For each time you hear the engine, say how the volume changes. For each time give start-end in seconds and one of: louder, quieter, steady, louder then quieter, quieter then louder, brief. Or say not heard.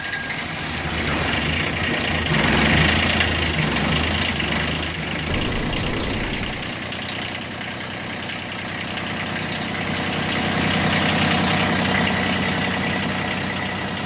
0.0-14.0 quieter then louder.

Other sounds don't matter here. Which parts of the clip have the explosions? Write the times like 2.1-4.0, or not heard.
5.2-6.6.